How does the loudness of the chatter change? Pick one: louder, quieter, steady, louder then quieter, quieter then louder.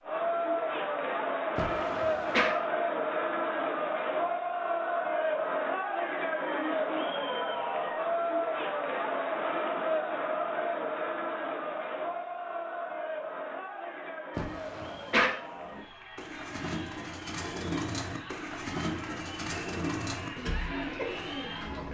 quieter.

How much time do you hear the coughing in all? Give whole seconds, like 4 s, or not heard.
2 s.